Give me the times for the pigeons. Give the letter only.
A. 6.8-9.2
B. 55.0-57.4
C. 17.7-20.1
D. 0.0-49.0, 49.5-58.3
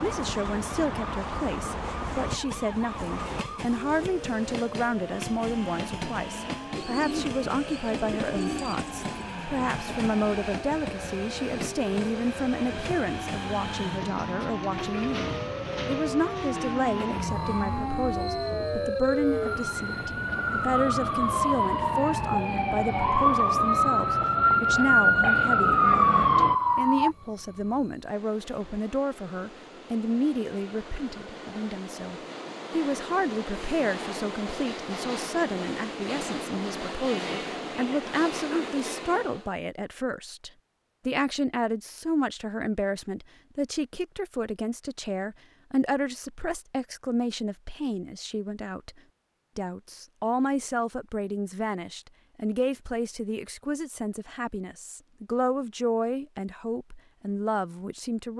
A.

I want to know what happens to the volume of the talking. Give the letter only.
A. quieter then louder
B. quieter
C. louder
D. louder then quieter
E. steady
E.